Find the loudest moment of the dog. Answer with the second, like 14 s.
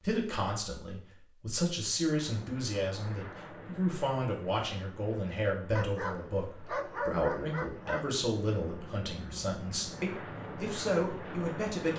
7 s.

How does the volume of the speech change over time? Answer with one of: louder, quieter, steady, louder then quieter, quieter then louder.
steady.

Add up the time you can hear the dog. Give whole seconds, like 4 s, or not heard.
2 s.